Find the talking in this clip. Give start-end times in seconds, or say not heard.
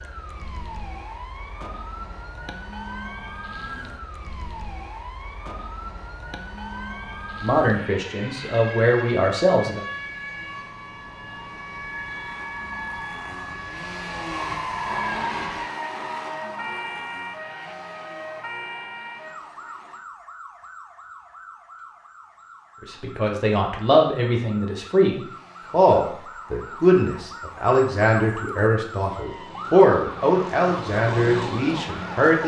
7.4-9.8, 22.9-32.4.